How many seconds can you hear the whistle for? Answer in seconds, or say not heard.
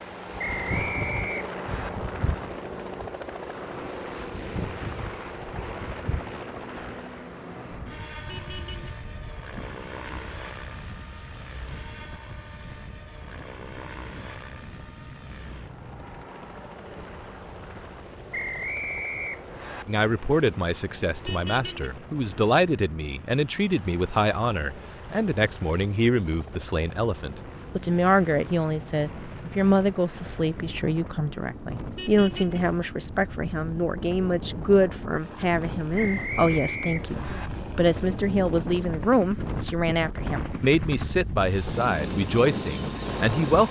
5 s.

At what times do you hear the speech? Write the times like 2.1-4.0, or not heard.
19.9-43.6.